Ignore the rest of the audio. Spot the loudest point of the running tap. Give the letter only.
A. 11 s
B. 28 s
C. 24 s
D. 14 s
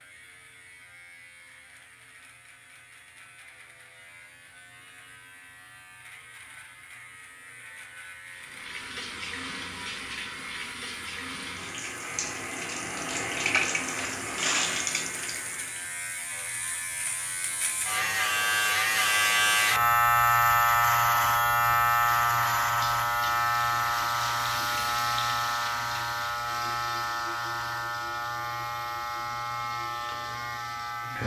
D.